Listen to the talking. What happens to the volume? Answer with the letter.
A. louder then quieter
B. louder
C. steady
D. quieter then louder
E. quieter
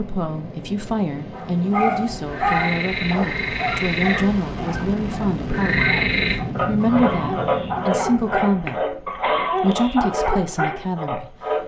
C.